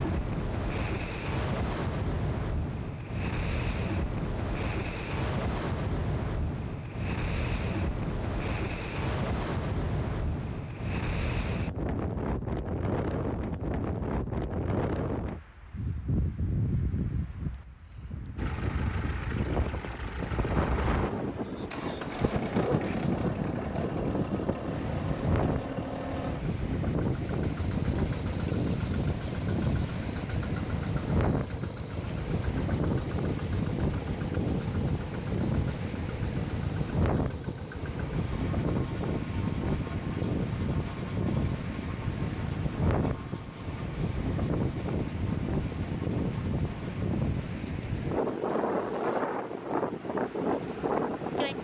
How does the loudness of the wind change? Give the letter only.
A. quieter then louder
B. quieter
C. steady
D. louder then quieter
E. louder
C.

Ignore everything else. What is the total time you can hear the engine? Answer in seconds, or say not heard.
33 s.